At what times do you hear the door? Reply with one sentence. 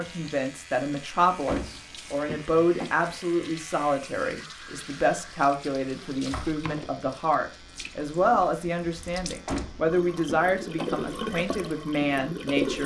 You can hear the door from 1.4 to 3.2 s and from 9.4 to 10.9 s.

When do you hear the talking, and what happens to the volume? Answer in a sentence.
You can hear the talking from 0.0 to 12.8 s, at a steady volume.